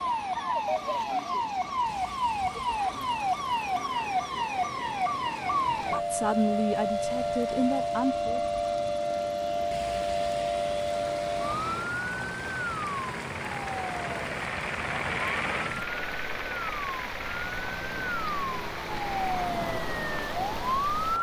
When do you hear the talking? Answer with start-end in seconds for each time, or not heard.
5.9-8.4.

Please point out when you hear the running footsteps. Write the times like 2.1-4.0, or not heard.
not heard.